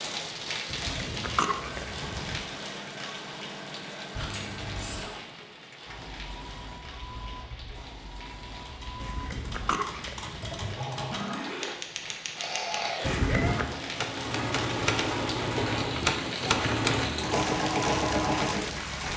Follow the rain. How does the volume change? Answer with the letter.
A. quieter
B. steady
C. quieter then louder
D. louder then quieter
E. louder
C.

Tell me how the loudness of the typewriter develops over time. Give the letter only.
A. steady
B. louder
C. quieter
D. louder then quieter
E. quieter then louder
B.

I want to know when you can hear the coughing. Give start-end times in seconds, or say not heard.
0.7-2.5, 9.0-10.8, 13.0-13.7.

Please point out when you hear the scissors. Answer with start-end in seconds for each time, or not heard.
4.1-5.0.